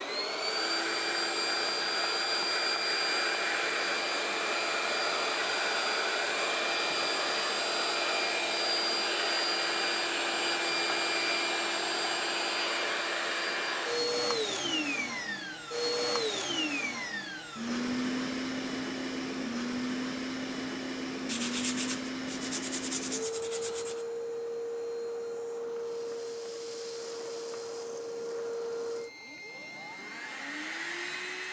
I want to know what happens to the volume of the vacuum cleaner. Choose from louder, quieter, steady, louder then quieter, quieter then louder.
quieter.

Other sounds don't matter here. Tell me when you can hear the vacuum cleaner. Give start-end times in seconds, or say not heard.
0.0-31.4.